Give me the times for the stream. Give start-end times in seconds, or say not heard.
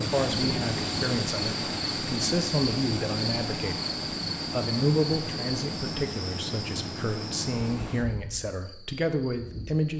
0.0-8.1.